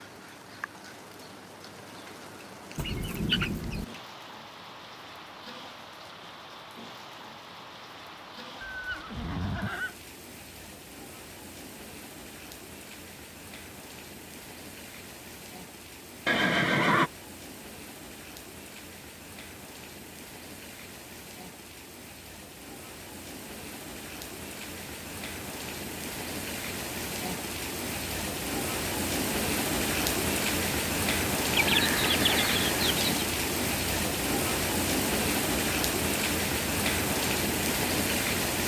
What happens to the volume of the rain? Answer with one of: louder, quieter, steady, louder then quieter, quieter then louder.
louder.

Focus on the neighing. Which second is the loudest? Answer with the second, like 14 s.
17 s.